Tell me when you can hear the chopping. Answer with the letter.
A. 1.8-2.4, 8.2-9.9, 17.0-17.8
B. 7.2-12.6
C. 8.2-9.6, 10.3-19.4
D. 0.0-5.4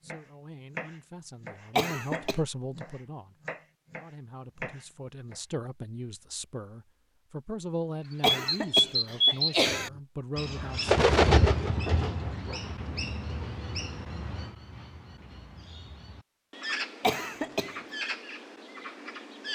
D.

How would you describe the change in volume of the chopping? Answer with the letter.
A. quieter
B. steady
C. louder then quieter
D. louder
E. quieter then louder
E.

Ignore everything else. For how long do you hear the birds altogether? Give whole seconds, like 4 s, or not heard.
10 s.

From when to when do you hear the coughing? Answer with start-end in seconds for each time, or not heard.
1.8-2.4, 8.2-9.9, 17.0-17.8.